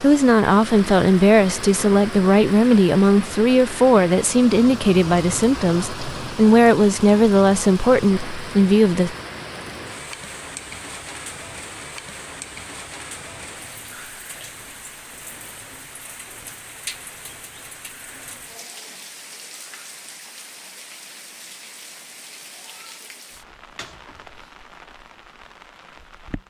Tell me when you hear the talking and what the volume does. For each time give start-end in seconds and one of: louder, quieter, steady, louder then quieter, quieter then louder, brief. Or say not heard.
0.0-9.2 steady.